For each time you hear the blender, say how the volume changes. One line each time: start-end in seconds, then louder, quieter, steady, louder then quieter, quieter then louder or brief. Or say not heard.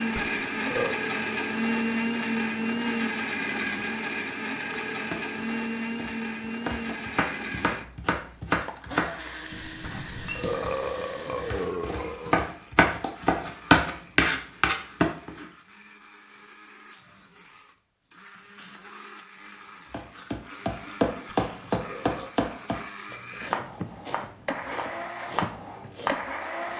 0.0-26.7 quieter then louder.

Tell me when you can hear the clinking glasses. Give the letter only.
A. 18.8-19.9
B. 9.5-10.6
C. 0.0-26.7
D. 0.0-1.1
B.